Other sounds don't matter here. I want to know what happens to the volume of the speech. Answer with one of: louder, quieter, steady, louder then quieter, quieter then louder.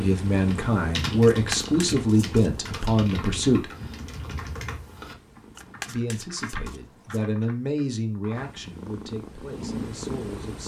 quieter.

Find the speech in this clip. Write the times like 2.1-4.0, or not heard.
0.0-3.7, 5.8-10.6.